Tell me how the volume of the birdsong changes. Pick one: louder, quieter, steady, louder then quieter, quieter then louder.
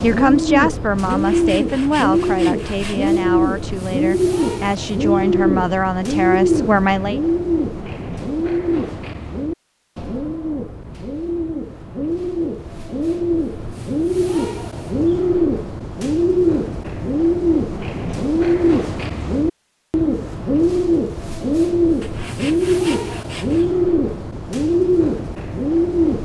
steady.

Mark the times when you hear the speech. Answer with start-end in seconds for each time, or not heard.
0.0-7.2.